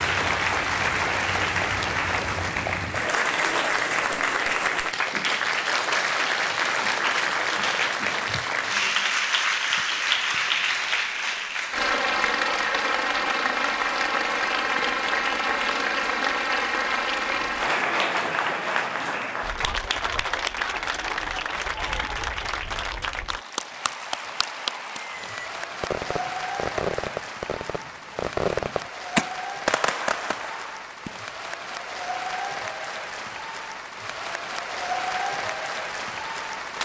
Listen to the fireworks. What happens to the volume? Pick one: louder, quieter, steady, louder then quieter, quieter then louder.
louder then quieter.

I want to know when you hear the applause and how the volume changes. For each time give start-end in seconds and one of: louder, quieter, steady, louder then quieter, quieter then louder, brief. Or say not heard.
0.0-36.8 quieter.